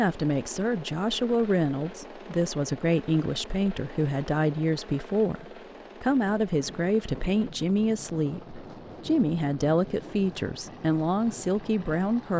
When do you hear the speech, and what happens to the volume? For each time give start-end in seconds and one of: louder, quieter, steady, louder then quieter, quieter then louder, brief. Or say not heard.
0.0-12.3 steady.